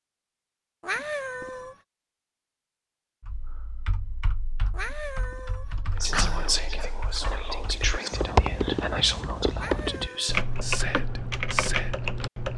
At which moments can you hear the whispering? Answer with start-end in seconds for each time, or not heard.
6.0-12.1.